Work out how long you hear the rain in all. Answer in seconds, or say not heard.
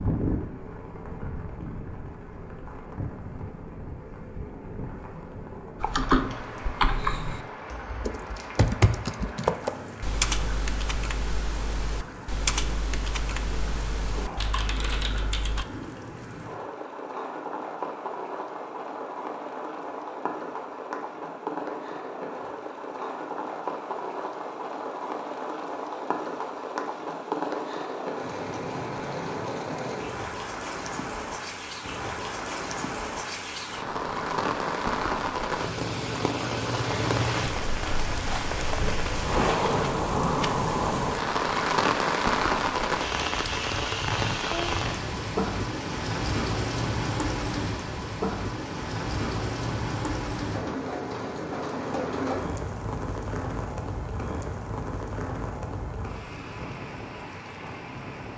58 s.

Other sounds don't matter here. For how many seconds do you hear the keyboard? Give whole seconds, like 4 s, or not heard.
10 s.